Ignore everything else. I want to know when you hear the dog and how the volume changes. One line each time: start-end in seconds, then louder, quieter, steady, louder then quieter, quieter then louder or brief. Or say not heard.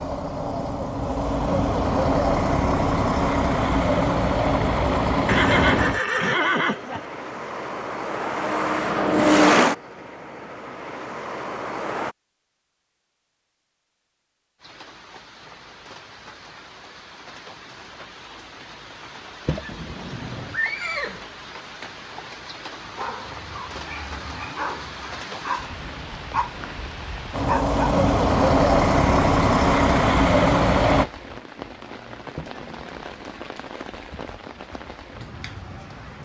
22.9-27.8 louder then quieter.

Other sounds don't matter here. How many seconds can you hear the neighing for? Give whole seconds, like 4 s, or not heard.
4 s.